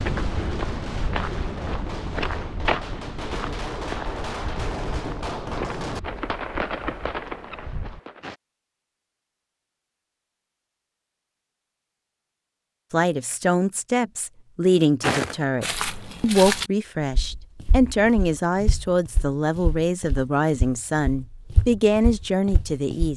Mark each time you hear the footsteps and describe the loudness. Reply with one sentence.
The footsteps can be heard from 0.0 to 8.3 s, getting quieter; and from 15.0 to 23.1 s, getting quieter then louder.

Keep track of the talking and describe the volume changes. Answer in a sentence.
The loudness of the talking stays about the same.